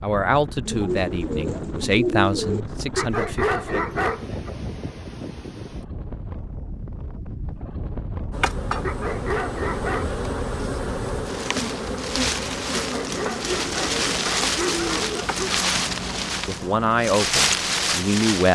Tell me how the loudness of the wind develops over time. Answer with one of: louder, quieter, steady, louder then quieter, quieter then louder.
louder.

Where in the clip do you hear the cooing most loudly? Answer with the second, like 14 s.
2 s.